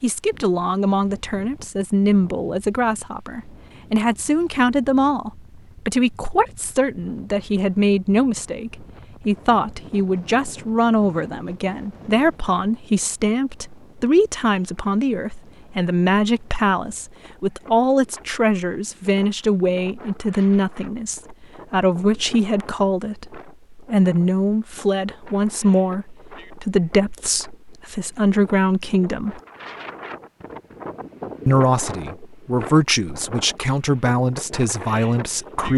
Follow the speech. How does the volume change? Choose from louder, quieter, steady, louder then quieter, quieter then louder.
steady.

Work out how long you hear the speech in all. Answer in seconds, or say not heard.
34 s.